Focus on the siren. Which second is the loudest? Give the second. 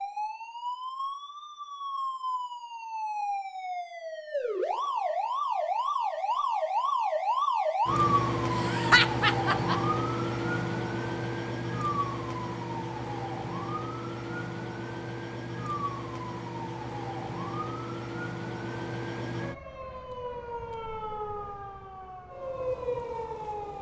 8 s.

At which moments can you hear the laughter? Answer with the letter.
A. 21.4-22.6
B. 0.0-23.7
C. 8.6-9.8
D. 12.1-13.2
C.